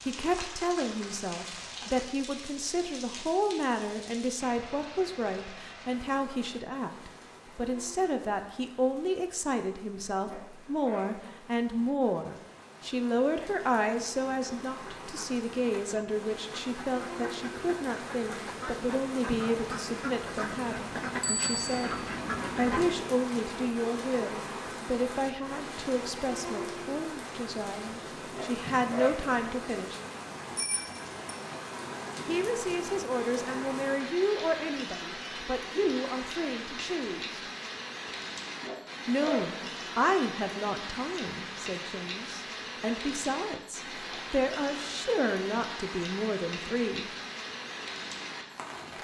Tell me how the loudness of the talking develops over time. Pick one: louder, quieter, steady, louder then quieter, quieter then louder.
steady.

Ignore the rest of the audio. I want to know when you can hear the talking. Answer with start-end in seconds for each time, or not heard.
0.0-21.9, 22.6-30.0, 32.2-37.4, 39.0-47.0.